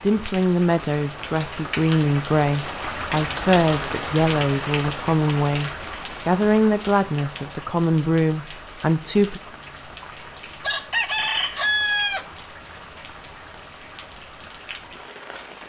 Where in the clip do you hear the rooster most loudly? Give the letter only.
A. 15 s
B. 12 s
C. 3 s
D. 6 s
B.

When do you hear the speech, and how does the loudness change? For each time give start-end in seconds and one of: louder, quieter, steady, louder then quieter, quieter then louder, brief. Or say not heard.
0.0-9.4 steady.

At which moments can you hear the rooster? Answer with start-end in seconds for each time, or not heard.
10.6-12.2.